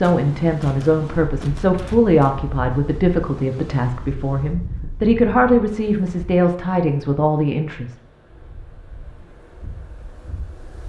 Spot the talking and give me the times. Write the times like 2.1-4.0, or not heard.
0.0-8.0.